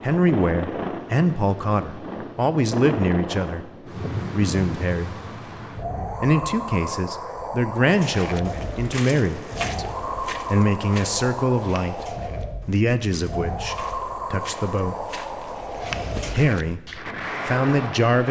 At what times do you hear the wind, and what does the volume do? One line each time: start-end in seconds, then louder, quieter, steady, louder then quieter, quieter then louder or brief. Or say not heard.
0.0-18.2 steady.